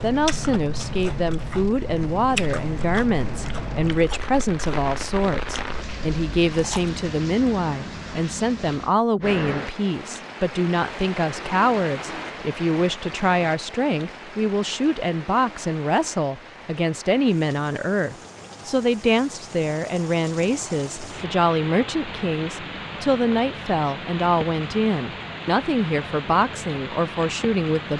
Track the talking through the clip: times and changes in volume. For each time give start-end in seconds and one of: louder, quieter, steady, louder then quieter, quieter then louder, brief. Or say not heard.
0.0-27.9 steady.